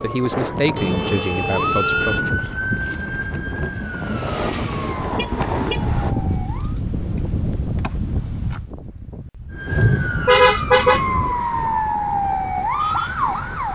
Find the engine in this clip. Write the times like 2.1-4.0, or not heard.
1.9-5.0.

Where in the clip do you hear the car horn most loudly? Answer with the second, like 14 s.
10 s.